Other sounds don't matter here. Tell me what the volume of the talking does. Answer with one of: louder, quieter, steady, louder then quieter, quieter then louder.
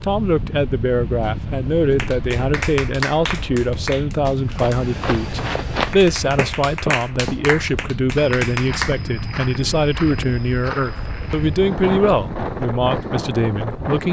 steady.